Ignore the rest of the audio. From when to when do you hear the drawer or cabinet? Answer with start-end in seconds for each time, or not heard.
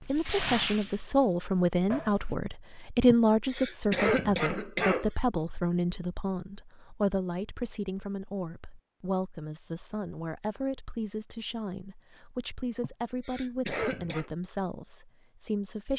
not heard.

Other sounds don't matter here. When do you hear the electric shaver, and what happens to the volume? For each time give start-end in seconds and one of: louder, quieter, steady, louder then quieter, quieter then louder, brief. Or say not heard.
not heard.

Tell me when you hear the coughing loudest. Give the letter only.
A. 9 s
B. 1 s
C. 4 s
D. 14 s
C.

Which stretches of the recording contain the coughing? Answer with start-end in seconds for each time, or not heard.
3.1-5.1, 12.8-14.3.